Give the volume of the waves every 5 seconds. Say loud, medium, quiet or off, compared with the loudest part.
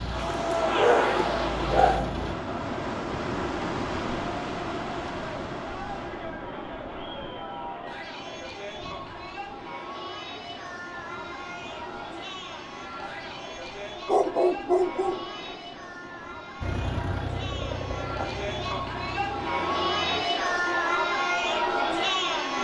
loud, medium, quiet, quiet, quiet.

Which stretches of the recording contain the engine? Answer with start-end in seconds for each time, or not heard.
0.0-2.4, 16.6-20.2.